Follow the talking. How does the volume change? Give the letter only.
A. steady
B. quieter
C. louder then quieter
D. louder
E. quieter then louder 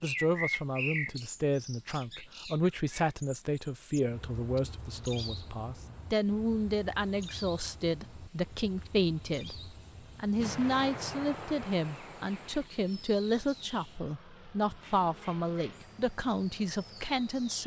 A.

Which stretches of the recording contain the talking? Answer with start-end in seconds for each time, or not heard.
0.0-17.6.